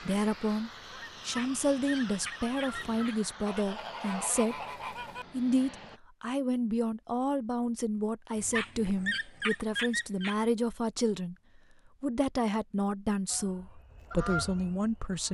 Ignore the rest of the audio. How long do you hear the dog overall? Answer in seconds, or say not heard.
4 s.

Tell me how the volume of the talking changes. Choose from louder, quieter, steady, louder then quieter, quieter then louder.
steady.